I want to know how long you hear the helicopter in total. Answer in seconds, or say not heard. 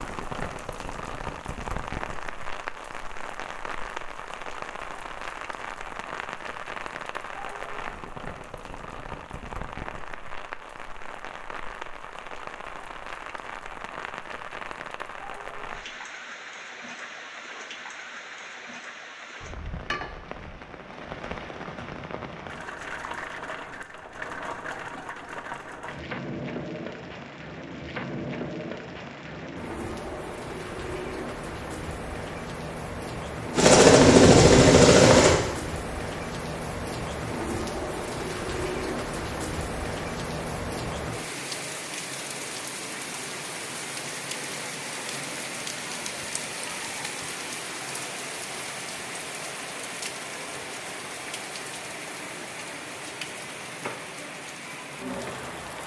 2 s.